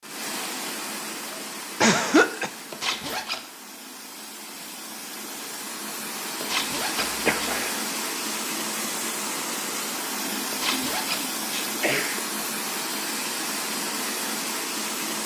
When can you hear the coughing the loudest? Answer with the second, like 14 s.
2 s.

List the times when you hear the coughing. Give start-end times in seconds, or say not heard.
1.8-2.5, 7.0-7.8, 10.2-12.2.